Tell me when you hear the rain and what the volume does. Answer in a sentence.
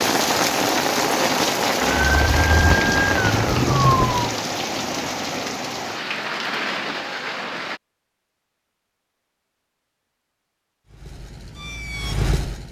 The rain can be heard from 0.0 to 7.8 s, getting quieter.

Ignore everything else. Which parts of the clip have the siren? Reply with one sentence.
The siren can be heard from 1.8 to 4.4 s and from 10.8 to 12.6 s.